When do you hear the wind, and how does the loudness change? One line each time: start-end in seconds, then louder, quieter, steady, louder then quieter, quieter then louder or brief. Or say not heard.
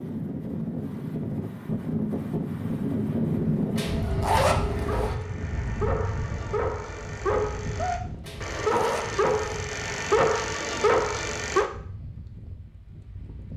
0.0-13.5 quieter.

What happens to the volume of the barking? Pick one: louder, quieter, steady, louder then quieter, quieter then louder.
louder.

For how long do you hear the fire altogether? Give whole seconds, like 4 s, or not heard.
not heard.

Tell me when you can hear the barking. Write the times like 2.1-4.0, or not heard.
4.7-11.7.